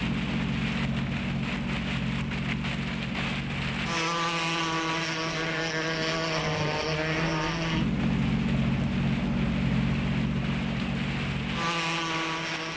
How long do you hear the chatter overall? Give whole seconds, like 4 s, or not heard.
not heard.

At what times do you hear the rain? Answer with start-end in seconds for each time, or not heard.
0.0-12.7.